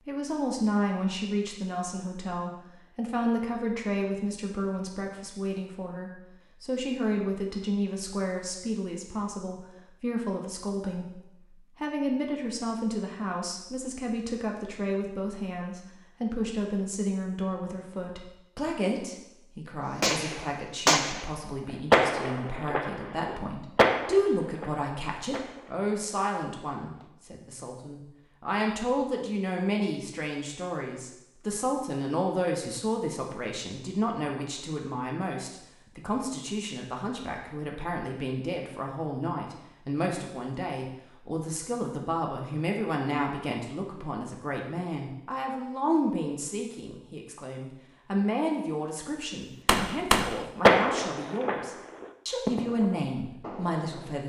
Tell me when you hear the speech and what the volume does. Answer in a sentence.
You can hear the speech from 0.1 to 54.2 s, at a steady volume.